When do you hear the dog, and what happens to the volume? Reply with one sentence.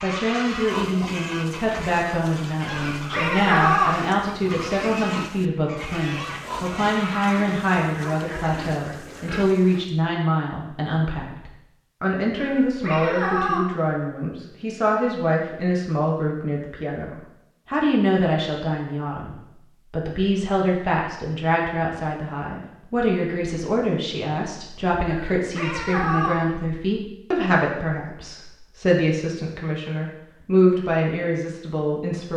The dog can't be heard in this clip.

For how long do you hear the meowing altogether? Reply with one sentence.
The meowing can be heard for 4 seconds in total.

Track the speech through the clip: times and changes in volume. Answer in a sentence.
You can hear the speech from 0.0 to 32.3 s, at a steady volume.